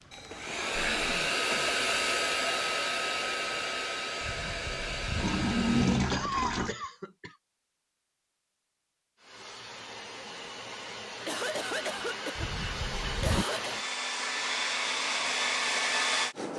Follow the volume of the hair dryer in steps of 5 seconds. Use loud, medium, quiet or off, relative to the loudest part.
loud, medium, medium, loud.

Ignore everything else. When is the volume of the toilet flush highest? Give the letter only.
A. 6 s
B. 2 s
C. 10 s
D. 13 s
A.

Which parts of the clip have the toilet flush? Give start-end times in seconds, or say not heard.
4.2-6.8, 12.3-13.4.